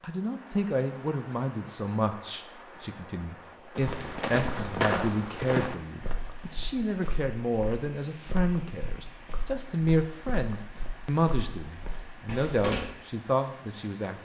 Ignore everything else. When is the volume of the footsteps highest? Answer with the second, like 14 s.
5 s.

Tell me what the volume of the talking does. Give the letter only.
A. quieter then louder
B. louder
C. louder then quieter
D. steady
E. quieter
D.